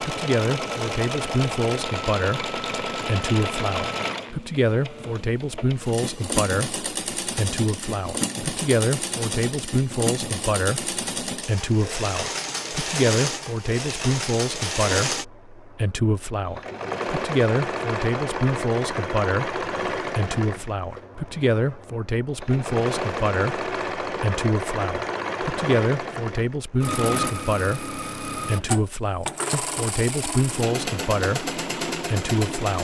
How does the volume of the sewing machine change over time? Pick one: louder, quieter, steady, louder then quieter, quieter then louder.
steady.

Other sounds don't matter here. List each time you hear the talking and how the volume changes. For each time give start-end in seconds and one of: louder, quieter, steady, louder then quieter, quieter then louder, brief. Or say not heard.
0.0-32.7 steady.